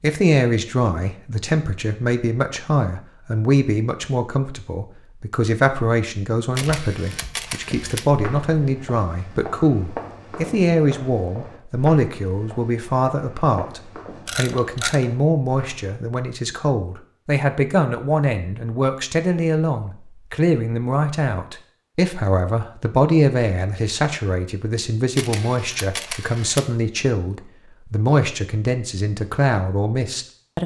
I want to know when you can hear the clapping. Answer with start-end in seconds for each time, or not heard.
not heard.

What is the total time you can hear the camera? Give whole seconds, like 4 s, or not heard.
4 s.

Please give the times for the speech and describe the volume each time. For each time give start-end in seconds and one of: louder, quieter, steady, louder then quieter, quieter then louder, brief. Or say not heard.
0.0-30.6 steady.